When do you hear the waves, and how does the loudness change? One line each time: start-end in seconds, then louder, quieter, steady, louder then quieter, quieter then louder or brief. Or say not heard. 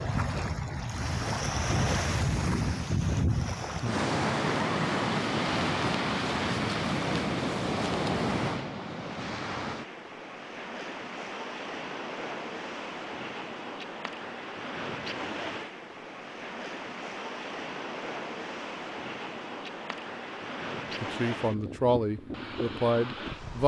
0.0-23.6 quieter.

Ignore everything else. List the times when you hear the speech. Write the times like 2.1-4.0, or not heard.
21.0-23.6.